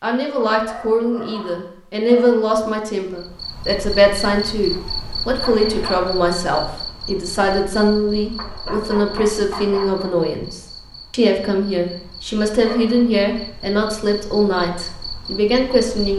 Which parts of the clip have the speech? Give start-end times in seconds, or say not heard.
0.0-16.1.